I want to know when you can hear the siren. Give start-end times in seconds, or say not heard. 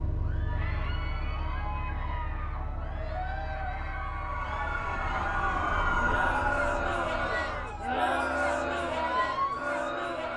4.2-10.2.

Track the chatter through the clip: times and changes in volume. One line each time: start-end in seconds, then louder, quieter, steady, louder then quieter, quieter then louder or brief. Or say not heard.
0.1-10.3 louder.